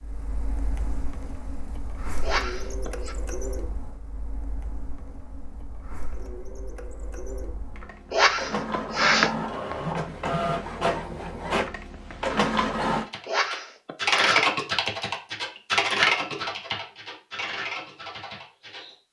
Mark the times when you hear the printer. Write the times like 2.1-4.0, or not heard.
0.0-13.1.